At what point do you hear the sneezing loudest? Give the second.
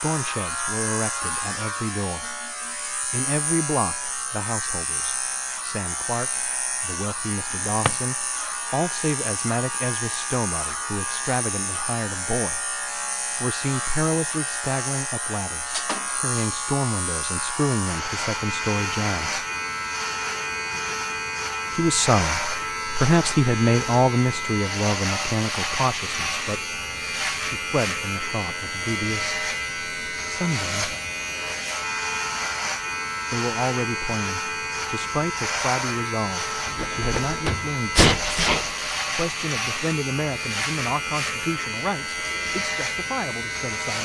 38 s.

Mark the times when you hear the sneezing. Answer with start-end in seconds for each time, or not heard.
36.8-38.8.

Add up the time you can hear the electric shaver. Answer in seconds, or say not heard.
44 s.